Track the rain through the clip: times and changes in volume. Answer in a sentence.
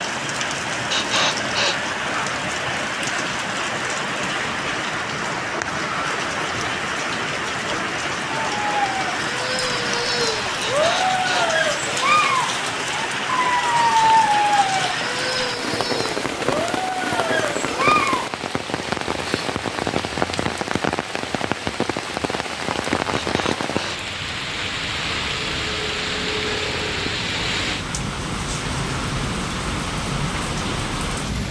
You can hear the rain from 0.0 to 31.4 s, at a steady volume.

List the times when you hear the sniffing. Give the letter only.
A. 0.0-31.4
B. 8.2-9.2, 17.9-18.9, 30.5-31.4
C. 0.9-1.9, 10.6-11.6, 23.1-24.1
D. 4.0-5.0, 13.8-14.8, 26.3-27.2
C.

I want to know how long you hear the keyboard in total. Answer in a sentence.
You can't hear the keyboard here.